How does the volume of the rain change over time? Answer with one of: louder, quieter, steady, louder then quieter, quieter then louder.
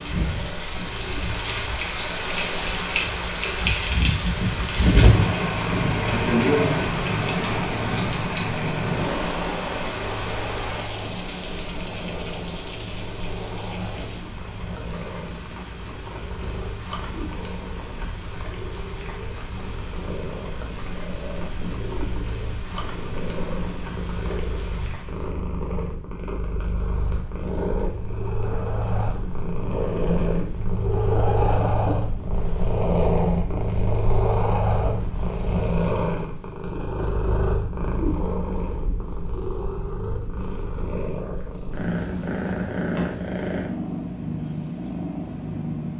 quieter.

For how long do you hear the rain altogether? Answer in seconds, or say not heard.
25 s.